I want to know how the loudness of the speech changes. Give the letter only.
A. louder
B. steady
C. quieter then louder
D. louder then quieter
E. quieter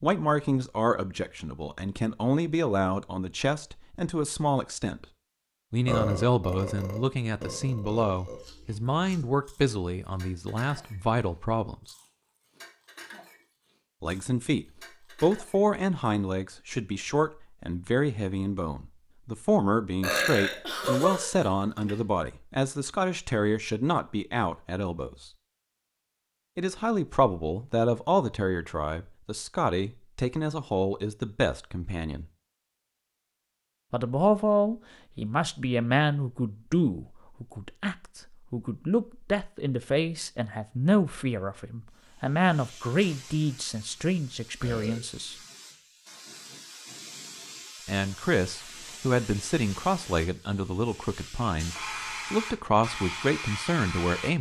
B.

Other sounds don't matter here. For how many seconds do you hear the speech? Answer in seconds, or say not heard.
46 s.